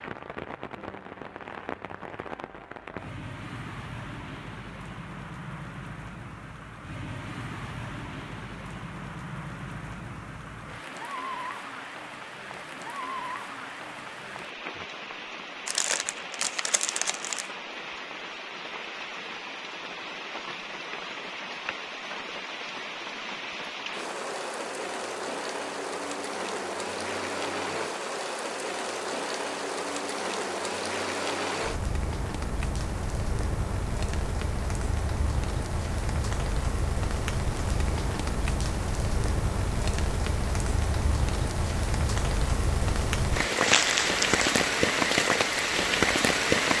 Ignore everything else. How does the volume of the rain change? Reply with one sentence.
The volume of the rain goes up.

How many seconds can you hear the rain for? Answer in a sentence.
You can hear the rain for 47 seconds altogether.